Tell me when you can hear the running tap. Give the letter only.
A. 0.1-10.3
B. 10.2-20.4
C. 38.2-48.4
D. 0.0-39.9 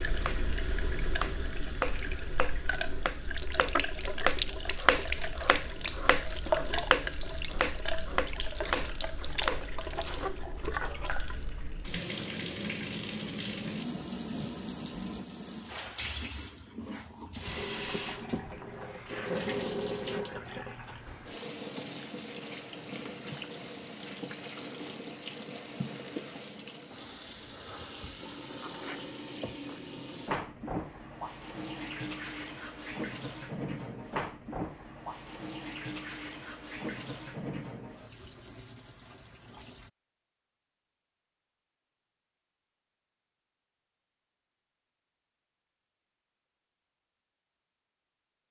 D.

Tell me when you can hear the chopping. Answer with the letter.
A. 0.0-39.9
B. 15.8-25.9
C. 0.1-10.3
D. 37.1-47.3
C.